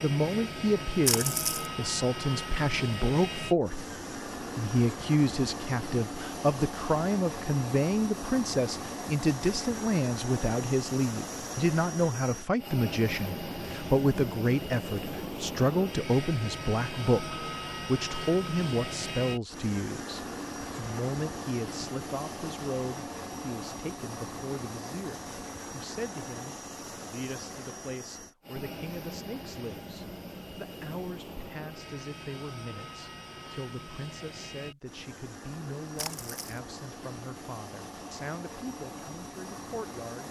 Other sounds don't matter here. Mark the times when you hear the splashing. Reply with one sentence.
The splashing can be heard from 1.1 to 1.7 s and from 36.0 to 36.6 s.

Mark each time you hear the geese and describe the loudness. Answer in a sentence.
You can't hear the geese here.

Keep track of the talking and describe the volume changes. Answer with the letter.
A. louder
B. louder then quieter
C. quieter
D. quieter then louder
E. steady
C.